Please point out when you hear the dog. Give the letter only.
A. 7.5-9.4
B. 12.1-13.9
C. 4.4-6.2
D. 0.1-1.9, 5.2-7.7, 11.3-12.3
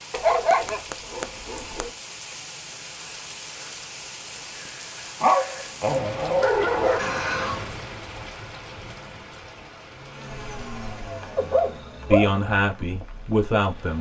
D.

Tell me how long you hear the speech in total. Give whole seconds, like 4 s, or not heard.
2 s.